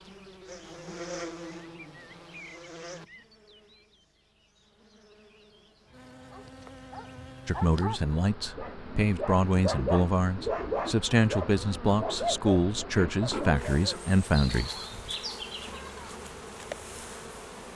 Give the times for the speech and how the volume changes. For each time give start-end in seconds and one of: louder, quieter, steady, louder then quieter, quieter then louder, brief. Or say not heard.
7.5-14.8 steady.